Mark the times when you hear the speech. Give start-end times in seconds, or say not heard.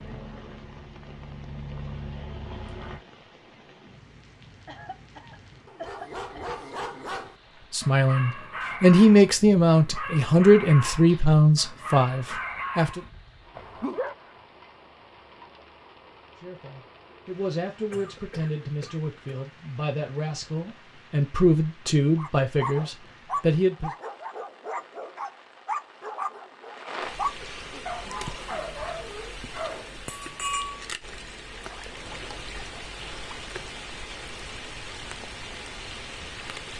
7.7-13.0, 16.4-23.9.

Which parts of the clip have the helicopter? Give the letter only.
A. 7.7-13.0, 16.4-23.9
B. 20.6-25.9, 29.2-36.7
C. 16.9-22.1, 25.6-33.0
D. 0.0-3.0
D.